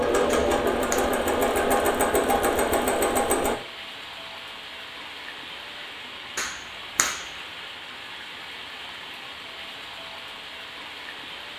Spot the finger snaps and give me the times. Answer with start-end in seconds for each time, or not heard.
0.2-1.1, 6.3-7.3.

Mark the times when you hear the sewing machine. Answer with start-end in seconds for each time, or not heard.
0.0-3.5.